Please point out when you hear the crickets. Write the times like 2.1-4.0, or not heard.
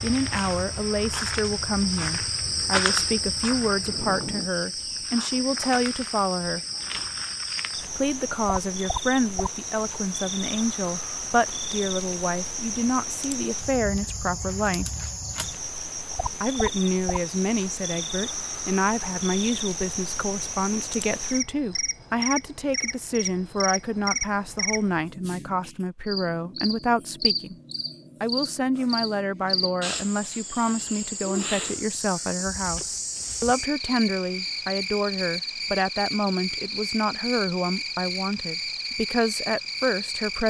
0.0-40.4.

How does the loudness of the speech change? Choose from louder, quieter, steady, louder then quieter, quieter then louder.
steady.